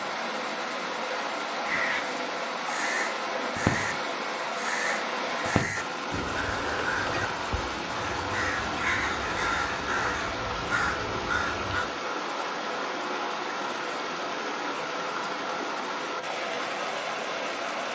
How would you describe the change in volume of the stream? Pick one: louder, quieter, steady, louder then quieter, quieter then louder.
steady.